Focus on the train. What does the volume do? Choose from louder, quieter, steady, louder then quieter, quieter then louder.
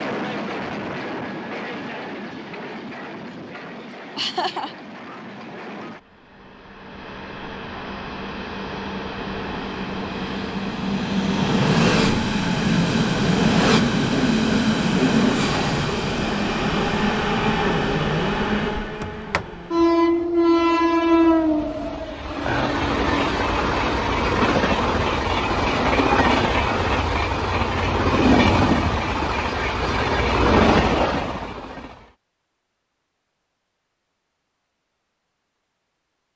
louder.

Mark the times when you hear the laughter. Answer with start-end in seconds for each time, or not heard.
3.8-4.8, 22.4-22.9.